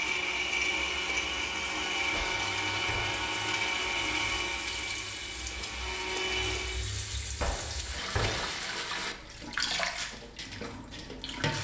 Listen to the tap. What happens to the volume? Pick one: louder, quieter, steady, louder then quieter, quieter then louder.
louder.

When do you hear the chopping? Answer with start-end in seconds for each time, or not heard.
not heard.